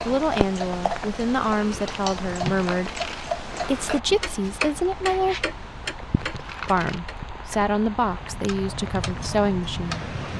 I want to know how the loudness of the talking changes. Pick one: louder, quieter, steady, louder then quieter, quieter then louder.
steady.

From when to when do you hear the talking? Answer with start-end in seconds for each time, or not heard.
0.1-5.5, 6.7-10.1.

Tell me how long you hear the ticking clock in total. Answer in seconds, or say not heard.
10 s.